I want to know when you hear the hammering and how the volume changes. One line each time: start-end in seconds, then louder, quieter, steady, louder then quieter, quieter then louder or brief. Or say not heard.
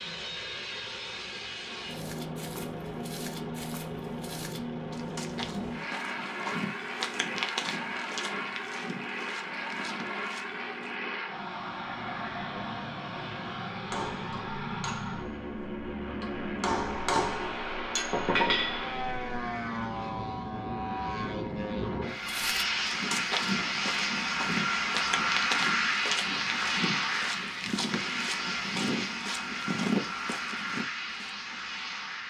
13.8-19.4 quieter then louder.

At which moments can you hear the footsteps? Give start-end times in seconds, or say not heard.
1.9-11.0, 22.2-31.3.